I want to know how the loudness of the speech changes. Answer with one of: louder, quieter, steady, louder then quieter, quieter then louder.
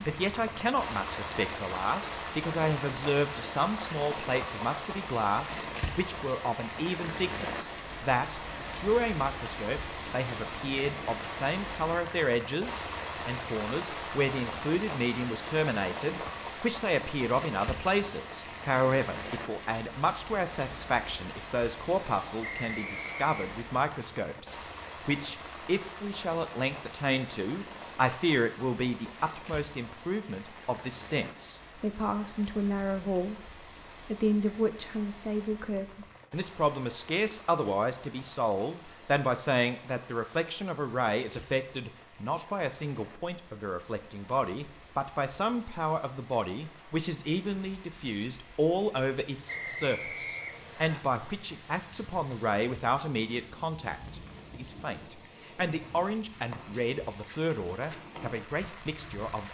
steady.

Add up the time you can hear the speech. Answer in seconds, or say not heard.
59 s.